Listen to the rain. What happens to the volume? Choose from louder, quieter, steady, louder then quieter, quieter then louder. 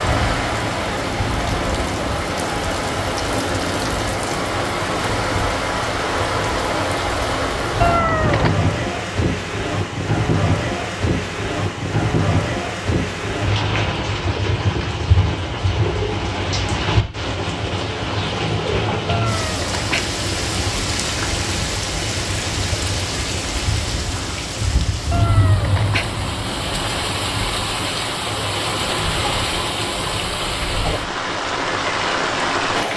steady.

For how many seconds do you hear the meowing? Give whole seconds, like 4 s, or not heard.
4 s.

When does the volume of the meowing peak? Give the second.
8 s.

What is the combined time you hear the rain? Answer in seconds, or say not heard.
33 s.